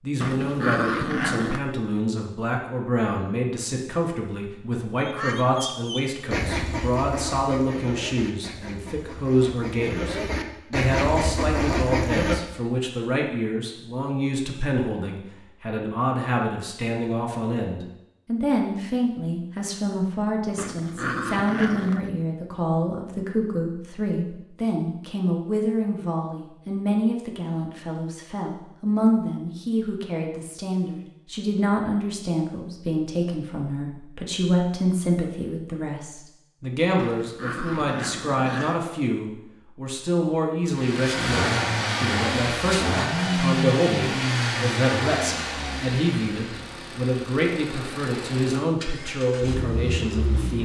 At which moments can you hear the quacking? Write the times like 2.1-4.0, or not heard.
5.0-12.4.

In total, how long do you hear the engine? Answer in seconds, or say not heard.
10 s.